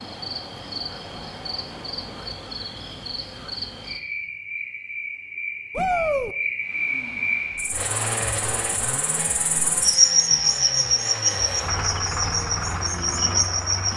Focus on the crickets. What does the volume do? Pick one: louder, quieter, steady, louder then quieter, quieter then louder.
louder.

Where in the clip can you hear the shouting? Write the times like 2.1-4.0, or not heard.
5.8-6.3.